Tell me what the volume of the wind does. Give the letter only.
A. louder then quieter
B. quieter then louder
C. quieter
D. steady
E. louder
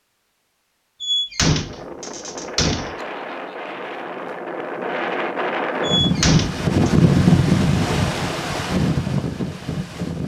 A.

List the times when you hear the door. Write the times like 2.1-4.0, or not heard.
1.0-3.0, 5.8-7.0.